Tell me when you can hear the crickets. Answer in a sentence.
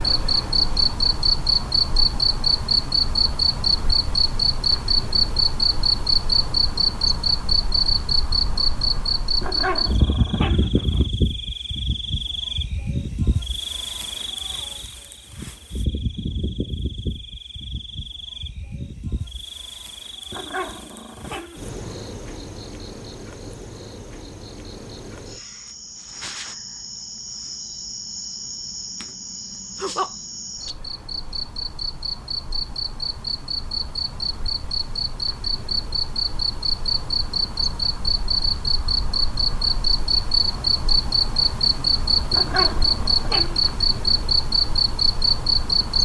The crickets can be heard from 0.0 to 46.0 s.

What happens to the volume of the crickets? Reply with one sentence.
The volume of the crickets goes down, then up.